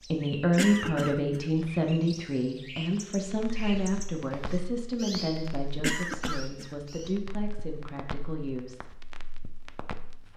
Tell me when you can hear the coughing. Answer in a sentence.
The coughing can be heard from 0.6 to 1.6 s and from 5.8 to 6.8 s.